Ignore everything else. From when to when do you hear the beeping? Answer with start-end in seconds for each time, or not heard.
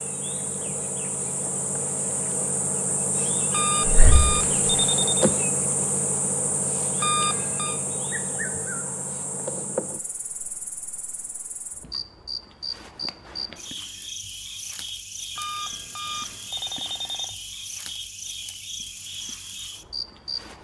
3.5-5.3, 7.0-7.8, 15.3-17.4.